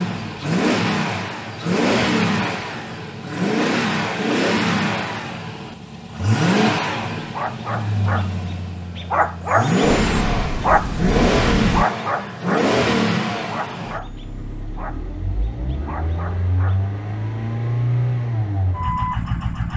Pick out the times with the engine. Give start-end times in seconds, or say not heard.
0.0-19.7.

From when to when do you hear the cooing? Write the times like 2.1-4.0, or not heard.
not heard.